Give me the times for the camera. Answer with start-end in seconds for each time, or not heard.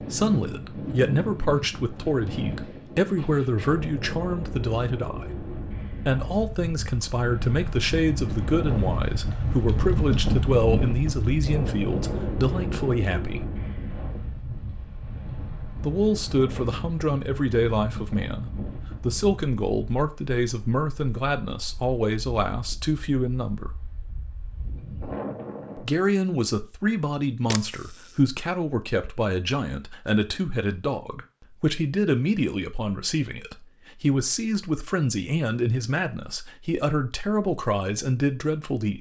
27.5-28.1.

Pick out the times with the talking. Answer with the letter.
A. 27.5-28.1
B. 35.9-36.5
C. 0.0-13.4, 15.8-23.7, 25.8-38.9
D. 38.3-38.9
C.